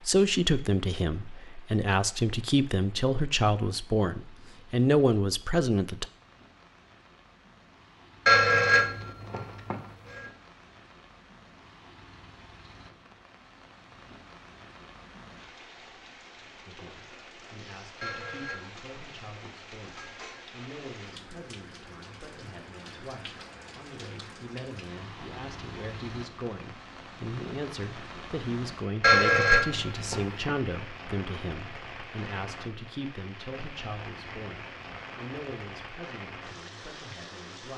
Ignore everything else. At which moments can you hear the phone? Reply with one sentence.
The phone can be heard from 8.2 to 10.2 s, from 18.0 to 20.4 s and from 29.0 to 30.5 s.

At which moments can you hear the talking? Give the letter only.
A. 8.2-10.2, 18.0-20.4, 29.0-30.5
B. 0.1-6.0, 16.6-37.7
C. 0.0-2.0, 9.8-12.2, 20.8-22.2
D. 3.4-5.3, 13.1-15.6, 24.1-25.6
B.